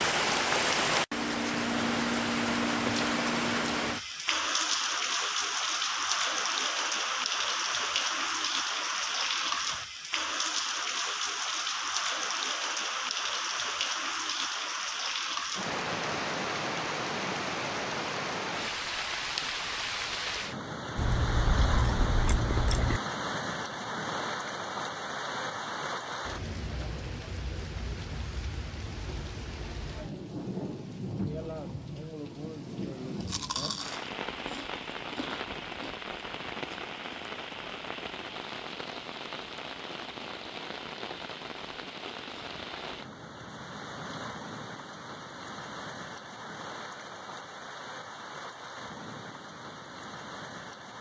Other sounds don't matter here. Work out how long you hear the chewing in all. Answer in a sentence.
You can hear the chewing for 5 seconds altogether.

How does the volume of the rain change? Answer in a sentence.
The loudness of the rain goes down.